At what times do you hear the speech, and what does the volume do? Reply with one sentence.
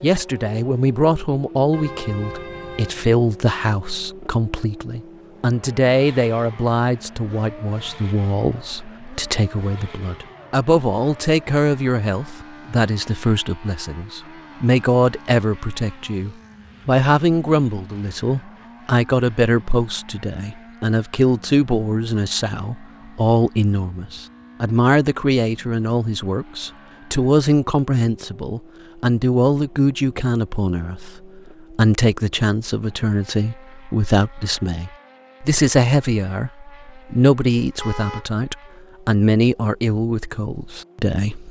You can hear the speech from 0.0 to 41.4 s, at a steady volume.